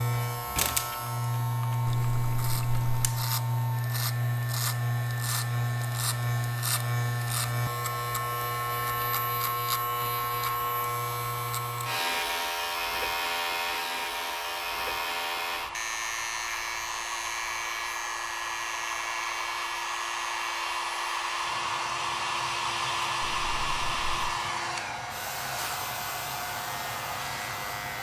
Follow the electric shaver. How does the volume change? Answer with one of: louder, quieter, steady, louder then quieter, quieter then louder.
quieter.